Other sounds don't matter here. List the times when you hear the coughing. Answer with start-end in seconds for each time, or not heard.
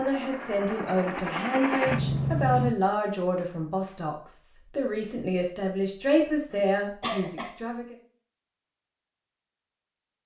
6.5-7.5.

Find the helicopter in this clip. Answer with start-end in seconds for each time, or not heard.
0.0-2.8.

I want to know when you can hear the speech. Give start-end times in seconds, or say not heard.
0.0-8.0.